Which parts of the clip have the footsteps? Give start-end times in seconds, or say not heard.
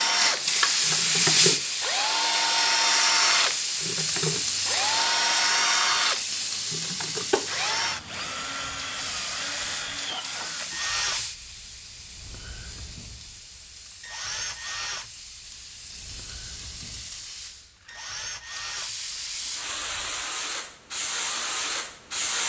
not heard.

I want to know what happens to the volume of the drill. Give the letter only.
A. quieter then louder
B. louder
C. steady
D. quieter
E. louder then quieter
D.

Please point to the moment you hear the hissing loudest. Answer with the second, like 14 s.
1 s.